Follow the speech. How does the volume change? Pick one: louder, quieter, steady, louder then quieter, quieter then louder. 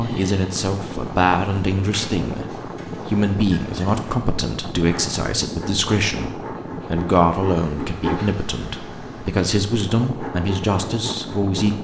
steady.